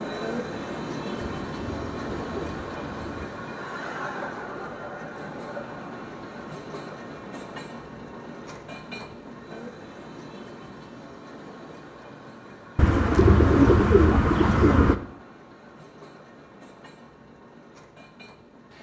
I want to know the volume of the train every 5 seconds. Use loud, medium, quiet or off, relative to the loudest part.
loud, medium, medium, quiet.